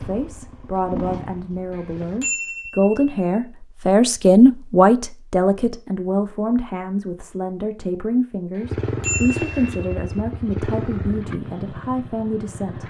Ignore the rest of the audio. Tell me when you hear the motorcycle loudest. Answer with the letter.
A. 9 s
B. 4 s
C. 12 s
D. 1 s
A.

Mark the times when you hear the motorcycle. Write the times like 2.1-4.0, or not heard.
0.0-2.2, 8.6-12.8.